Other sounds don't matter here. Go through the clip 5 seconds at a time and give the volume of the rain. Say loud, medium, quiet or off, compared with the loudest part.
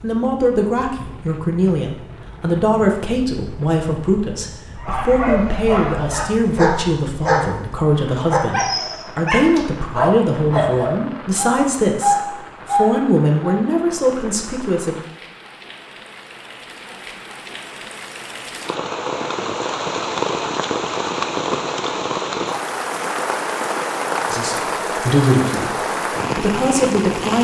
quiet, quiet, quiet, medium, loud, loud.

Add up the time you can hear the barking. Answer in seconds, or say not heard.
9 s.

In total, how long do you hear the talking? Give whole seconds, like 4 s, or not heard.
18 s.